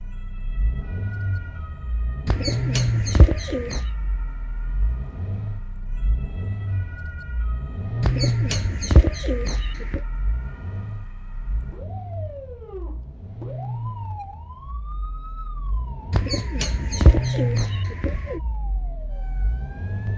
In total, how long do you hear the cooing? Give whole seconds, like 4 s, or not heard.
6 s.